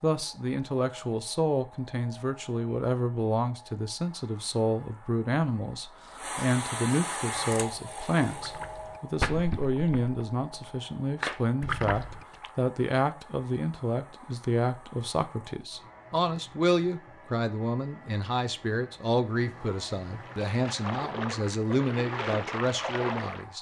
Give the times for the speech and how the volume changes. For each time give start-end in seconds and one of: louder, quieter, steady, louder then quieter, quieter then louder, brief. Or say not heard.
0.0-23.5 steady.